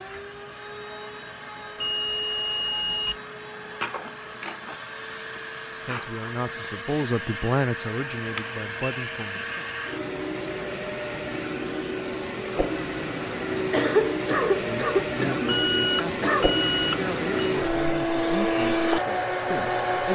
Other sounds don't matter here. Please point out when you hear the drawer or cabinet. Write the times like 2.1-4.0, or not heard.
not heard.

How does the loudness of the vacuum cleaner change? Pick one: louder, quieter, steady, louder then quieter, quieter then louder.
louder.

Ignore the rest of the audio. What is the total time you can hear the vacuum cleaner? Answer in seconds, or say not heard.
20 s.